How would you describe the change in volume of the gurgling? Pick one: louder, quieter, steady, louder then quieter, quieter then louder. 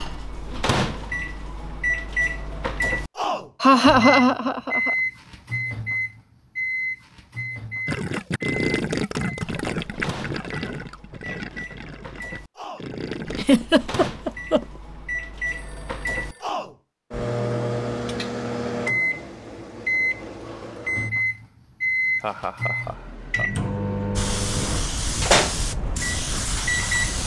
quieter.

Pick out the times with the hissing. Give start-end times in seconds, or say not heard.
24.1-27.2.